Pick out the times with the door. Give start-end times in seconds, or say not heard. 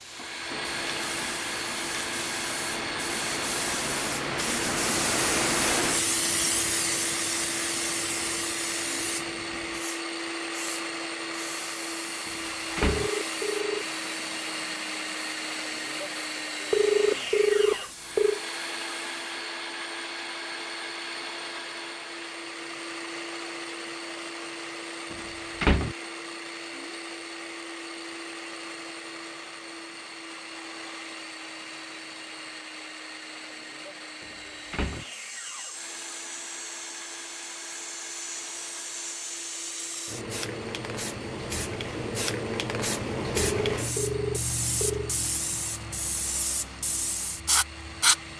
12.2-13.1, 25.1-25.9, 34.2-35.0.